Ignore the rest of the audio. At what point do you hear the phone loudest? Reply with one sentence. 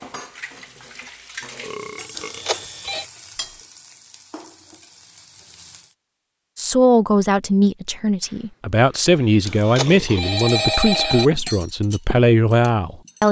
The loudest moment of the phone is at 11 seconds.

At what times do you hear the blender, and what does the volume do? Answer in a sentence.
The blender can't be heard in this clip.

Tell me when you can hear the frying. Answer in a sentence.
You can hear the frying from 1.6 to 6.0 s.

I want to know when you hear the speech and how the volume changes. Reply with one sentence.
The speech can be heard from 6.5 to 13.2 s, at a steady volume.